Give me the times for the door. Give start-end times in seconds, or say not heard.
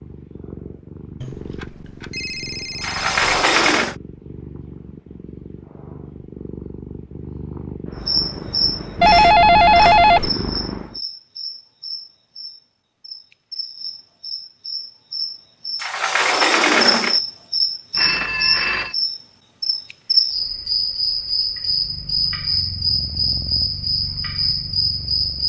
2.8-4.0, 15.8-17.2.